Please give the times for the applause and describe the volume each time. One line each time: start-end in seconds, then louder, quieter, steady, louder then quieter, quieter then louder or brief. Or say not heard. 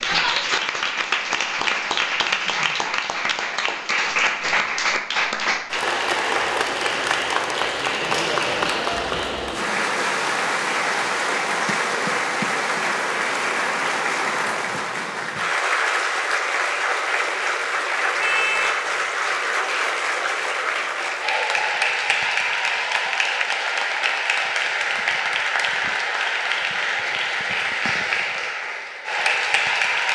0.0-30.1 steady.